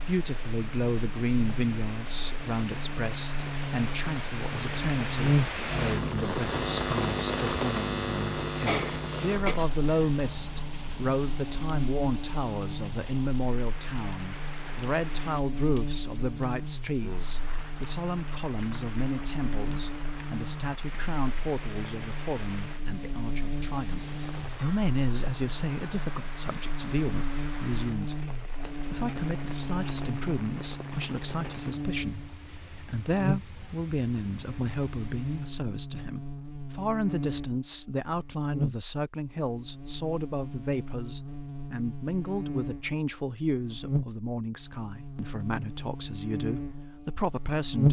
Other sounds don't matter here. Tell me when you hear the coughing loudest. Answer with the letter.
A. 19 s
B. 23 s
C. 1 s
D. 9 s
D.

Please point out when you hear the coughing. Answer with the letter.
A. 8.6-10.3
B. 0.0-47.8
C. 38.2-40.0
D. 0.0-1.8
A.